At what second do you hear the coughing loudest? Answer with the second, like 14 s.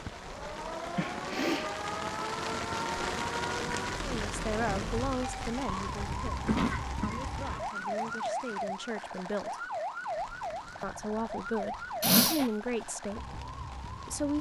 12 s.